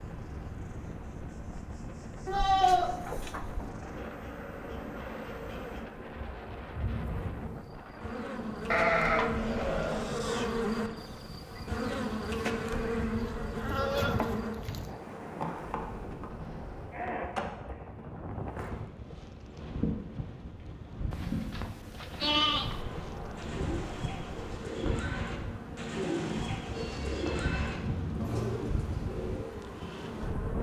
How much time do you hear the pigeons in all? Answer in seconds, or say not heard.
7 s.